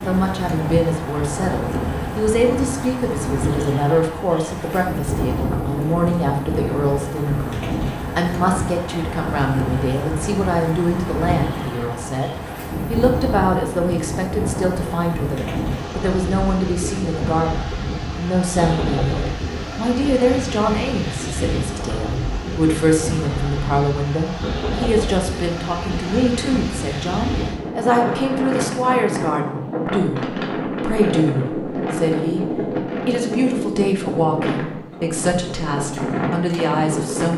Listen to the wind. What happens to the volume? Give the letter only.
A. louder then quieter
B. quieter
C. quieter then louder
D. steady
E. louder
D.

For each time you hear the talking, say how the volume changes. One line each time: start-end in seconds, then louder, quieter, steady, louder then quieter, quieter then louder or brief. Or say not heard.
0.1-37.3 steady.